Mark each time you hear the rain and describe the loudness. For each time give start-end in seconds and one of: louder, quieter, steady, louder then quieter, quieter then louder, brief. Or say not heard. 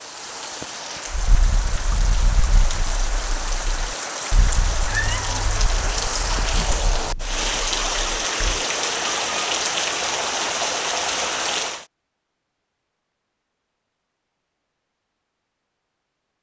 0.0-11.8 louder.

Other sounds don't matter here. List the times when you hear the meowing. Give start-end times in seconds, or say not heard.
4.8-5.6.